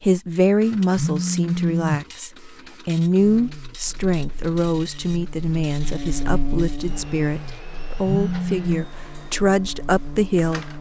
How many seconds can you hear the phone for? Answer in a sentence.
You can hear the phone for 2 seconds altogether.